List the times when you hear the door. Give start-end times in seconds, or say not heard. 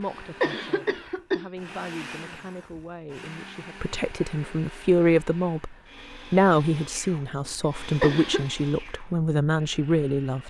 not heard.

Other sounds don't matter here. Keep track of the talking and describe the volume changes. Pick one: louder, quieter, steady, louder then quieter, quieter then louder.
louder.